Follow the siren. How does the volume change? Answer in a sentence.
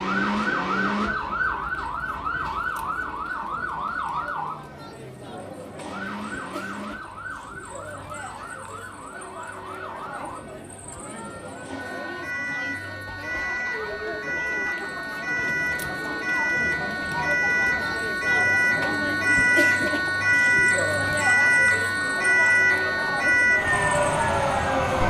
The loudness of the siren goes down, then up.